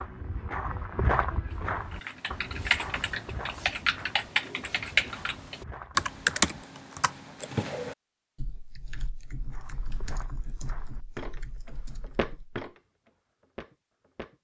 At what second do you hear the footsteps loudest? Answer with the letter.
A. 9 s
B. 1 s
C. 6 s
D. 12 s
B.